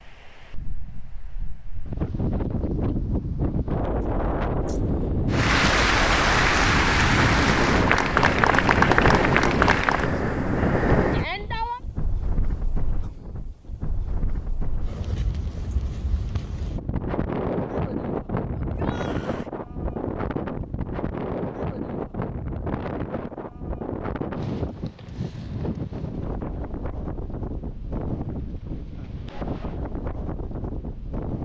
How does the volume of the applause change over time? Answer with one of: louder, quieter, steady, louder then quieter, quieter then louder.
steady.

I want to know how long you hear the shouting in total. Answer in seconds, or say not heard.
2 s.